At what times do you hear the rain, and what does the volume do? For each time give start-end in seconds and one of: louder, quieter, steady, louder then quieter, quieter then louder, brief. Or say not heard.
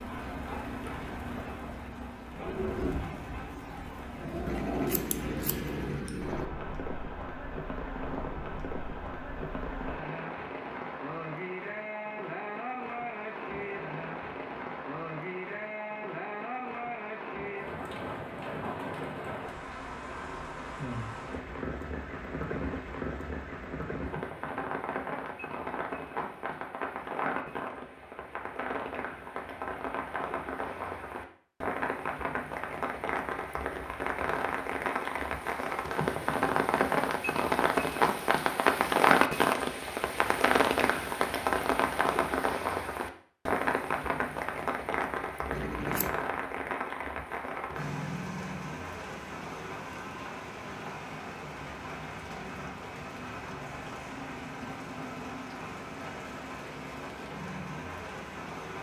0.0-58.7 louder then quieter.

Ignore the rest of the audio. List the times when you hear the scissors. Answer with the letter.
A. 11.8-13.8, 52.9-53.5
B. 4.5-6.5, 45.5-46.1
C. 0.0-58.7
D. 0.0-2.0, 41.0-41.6
B.